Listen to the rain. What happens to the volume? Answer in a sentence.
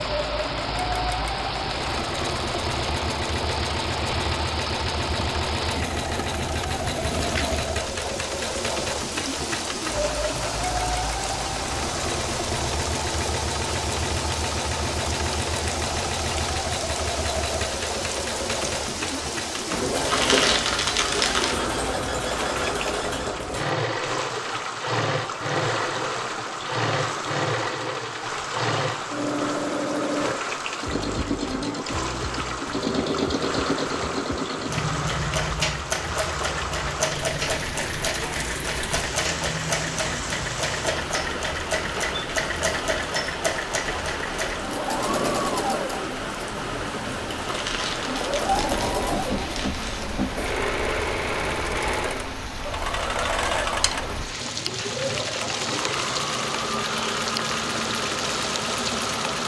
The volume of the rain stays about the same.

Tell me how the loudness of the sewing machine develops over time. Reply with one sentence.
The loudness of the sewing machine stays about the same.